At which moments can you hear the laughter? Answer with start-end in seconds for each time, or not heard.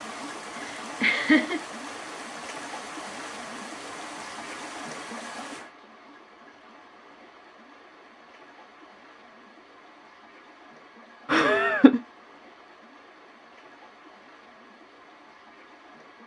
0.6-1.6, 11.2-12.0.